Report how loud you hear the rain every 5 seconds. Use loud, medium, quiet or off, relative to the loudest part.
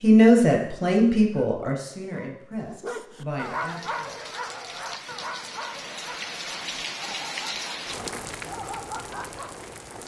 medium, loud.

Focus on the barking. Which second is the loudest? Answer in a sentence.
The loudest moment of the barking is at 4 seconds.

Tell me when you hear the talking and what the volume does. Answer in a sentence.
The talking can be heard from 0.0 to 4.1 s, getting quieter.